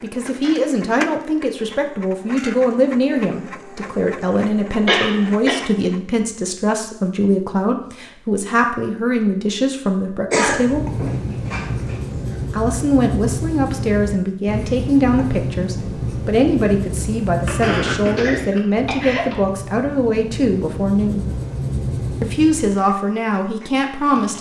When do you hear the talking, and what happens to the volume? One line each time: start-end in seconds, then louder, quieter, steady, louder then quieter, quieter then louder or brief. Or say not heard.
0.0-10.8 steady
12.5-21.2 steady
22.2-24.3 brief.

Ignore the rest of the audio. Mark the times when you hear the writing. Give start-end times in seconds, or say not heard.
10.4-22.8.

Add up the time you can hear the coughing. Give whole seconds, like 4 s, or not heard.
4 s.